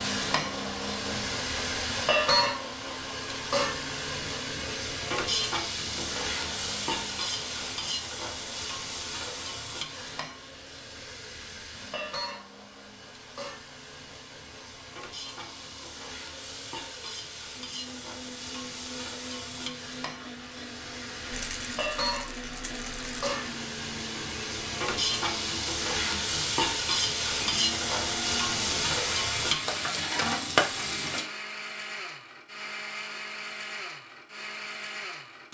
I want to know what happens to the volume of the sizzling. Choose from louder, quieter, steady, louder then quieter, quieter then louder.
quieter then louder.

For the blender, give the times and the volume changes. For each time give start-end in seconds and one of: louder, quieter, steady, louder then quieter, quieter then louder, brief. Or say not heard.
0.0-35.4 quieter then louder.